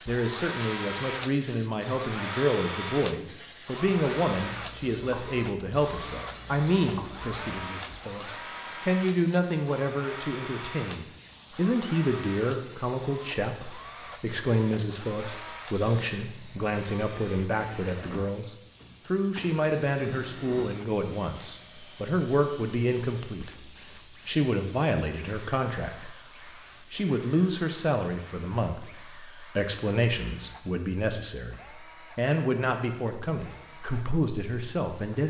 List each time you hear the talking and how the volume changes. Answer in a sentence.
You can hear the talking from 0.0 to 35.2 s, at a steady volume.